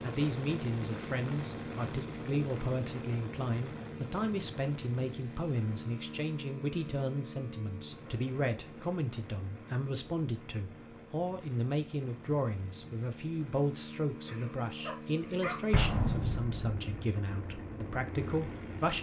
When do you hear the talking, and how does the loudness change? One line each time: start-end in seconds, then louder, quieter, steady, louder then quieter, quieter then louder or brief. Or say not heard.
0.0-18.9 steady.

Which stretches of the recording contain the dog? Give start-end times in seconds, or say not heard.
14.2-15.8.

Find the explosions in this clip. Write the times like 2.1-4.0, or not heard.
15.7-16.9.